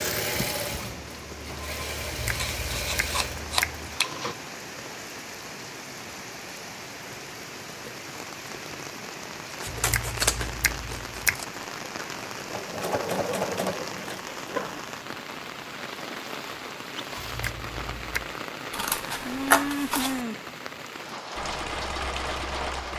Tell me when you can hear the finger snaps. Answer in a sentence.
You can hear the finger snaps from 2.0 to 3.7 s, from 9.7 to 11.4 s and from 17.2 to 18.3 s.